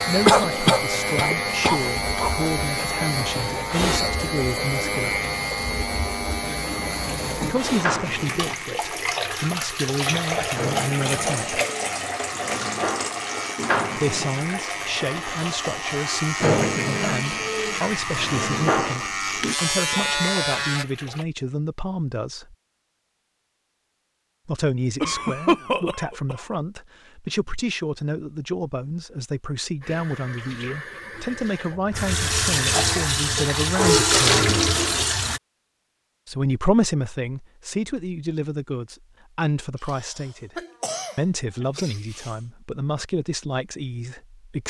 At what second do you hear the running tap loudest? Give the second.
34 s.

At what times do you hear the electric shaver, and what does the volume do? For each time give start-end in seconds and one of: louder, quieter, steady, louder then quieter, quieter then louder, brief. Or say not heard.
0.0-20.9 quieter then louder.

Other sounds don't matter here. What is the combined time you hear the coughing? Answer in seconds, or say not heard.
6 s.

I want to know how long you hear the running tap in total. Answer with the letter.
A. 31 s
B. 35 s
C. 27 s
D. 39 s
C.